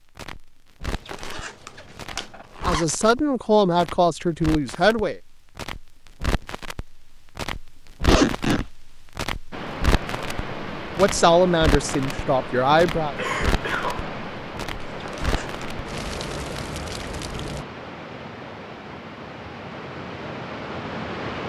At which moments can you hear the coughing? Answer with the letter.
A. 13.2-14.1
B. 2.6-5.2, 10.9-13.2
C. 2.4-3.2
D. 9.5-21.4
A.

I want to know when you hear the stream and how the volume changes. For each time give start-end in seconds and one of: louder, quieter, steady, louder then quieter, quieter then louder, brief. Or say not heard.
9.5-21.4 steady.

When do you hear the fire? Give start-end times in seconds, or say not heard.
0.0-17.6.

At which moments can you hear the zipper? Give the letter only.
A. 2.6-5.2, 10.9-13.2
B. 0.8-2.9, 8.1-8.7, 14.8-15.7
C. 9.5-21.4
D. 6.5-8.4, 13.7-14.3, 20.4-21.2
B.